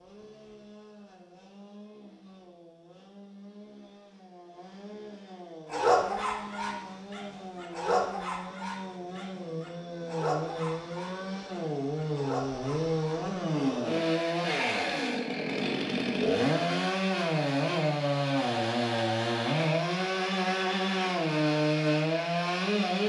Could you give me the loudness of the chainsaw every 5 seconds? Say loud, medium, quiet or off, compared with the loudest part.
quiet, quiet, loud, loud, loud.